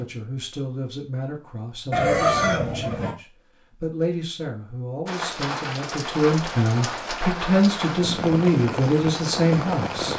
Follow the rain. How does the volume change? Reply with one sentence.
The volume of the rain stays about the same.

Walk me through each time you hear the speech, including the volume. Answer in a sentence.
The speech can be heard from 0.0 to 10.1 s, getting louder.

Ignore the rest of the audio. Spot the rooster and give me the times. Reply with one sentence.
You can hear the rooster from 1.9 to 3.1 s.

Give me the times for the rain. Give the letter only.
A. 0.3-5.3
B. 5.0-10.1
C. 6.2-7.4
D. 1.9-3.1
B.